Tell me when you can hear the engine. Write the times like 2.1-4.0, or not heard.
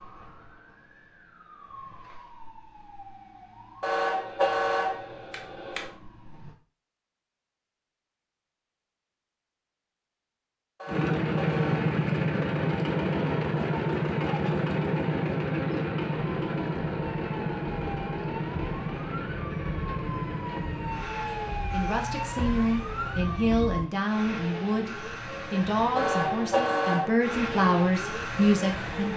10.8-29.1.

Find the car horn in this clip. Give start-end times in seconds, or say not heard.
3.8-6.0, 10.8-11.8, 25.9-27.2.